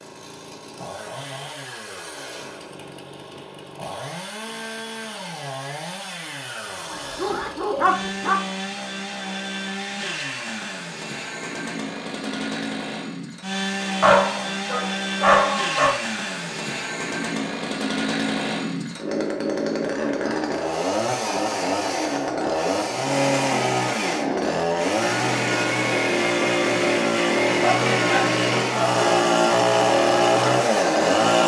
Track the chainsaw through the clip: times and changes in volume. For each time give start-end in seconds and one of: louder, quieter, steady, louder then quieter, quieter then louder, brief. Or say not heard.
0.0-31.4 louder.